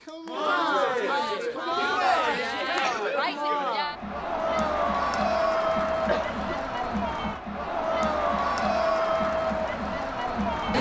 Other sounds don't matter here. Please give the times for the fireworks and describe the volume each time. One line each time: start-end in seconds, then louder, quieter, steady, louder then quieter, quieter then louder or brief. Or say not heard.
not heard.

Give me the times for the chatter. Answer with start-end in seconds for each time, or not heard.
0.1-10.7.